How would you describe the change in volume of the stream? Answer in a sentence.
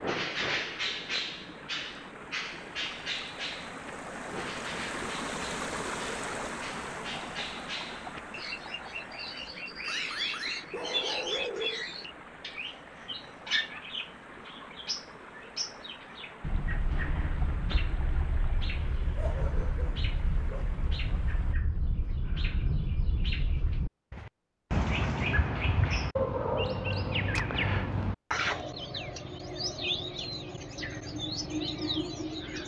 The loudness of the stream goes up, then down.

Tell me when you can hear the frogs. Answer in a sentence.
You can't hear the frogs here.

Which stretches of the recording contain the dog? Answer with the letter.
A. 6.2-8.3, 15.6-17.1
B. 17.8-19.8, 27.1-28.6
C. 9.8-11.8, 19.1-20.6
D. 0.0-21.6
C.